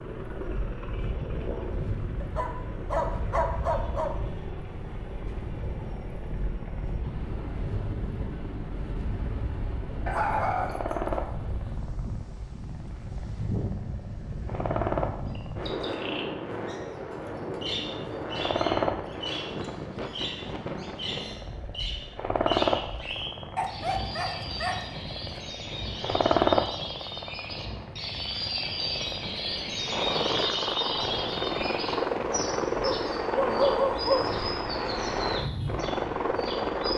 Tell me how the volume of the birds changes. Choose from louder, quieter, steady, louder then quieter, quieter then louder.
louder then quieter.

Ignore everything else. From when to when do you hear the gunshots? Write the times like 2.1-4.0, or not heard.
not heard.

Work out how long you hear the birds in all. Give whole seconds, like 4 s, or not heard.
22 s.